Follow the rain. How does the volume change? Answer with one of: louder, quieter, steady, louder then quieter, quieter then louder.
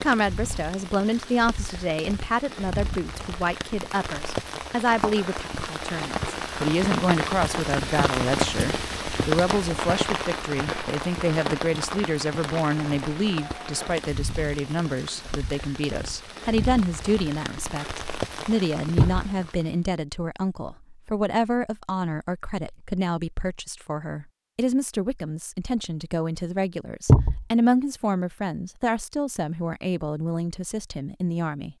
louder then quieter.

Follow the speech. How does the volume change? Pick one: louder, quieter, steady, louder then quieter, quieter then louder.
steady.